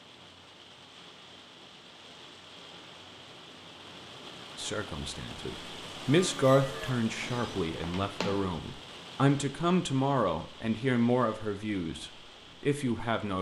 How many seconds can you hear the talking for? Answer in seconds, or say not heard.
9 s.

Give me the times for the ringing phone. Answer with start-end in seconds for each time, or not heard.
7.2-8.5.